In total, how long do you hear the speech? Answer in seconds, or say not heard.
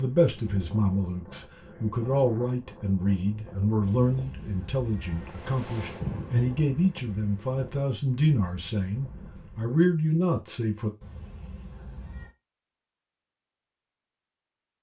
11 s.